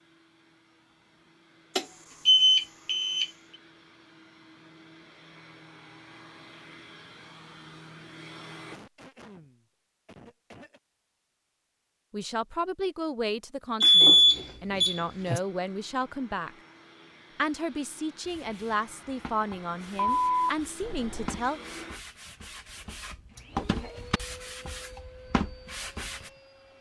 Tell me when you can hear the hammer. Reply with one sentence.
You can't hear the hammer here.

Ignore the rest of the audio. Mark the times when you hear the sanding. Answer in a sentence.
You can hear the sanding from 18.2 to 26.3 s.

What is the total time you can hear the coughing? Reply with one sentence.
You can hear the coughing for 2 seconds altogether.